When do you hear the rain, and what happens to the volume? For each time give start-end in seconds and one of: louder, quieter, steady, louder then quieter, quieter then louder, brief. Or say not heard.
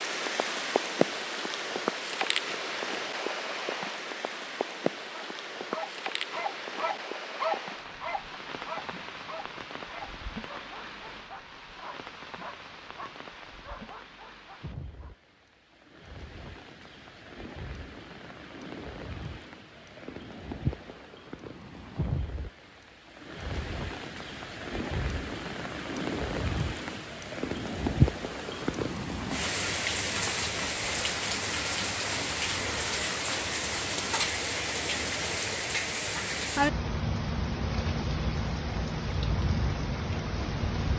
0.0-40.9 quieter then louder.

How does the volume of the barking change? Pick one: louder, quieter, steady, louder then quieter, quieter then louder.
quieter.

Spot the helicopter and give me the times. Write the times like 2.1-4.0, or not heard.
not heard.